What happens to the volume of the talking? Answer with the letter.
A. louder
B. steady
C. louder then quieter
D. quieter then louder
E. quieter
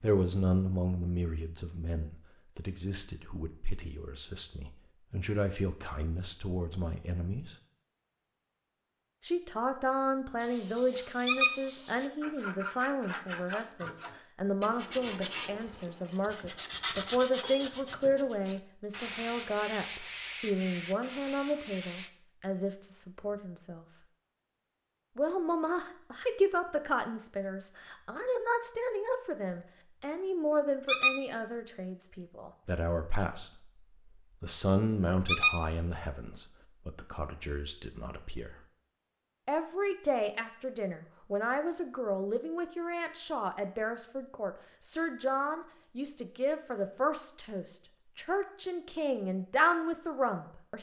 B.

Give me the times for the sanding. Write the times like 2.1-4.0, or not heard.
10.3-22.1.